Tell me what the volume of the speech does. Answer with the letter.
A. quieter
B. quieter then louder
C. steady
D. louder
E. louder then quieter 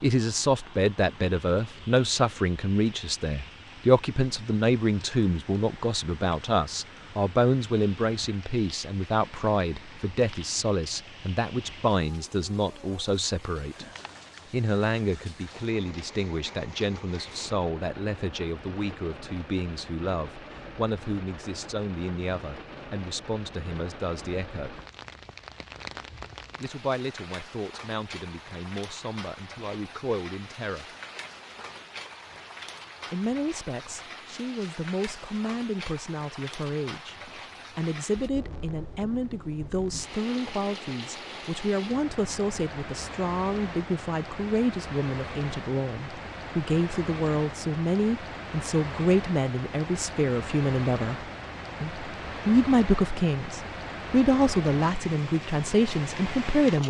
B.